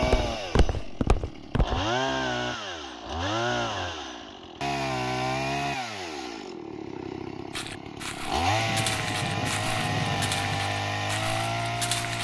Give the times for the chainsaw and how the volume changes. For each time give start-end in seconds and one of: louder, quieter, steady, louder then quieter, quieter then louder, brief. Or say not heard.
0.0-12.1 steady.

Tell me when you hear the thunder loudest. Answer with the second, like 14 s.
10 s.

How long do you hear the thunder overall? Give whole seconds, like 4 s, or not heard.
2 s.